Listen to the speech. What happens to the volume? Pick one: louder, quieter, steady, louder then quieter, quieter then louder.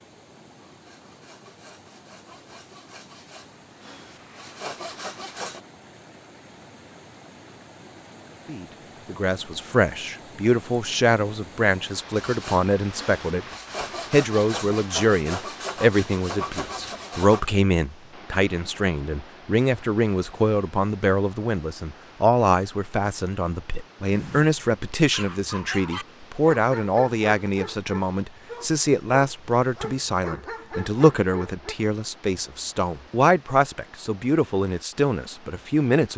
steady.